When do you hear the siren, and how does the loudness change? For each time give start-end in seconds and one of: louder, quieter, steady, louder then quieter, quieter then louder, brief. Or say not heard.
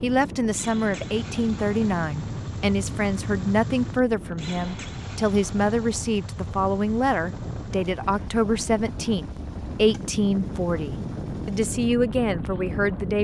not heard.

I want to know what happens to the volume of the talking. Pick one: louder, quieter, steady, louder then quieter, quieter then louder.
steady.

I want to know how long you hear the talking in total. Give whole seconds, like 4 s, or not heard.
13 s.